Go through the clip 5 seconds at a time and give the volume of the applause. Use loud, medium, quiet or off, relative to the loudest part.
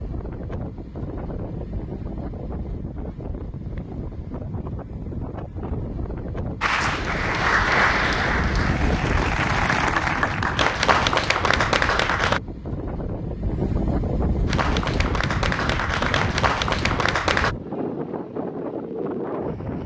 off, loud, loud, loud.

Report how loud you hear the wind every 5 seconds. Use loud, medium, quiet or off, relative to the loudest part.
medium, loud, loud, loud.